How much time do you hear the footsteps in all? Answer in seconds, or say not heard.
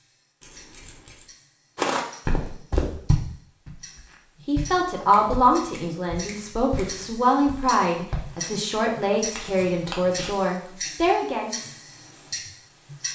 7 s.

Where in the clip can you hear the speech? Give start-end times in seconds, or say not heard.
4.5-11.6.